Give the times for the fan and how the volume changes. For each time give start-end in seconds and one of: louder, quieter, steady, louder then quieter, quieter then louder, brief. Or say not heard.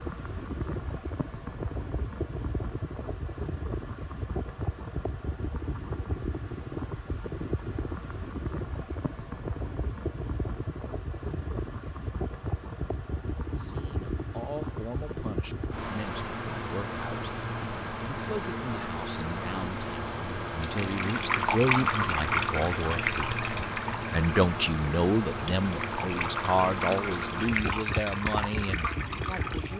0.0-29.7 steady.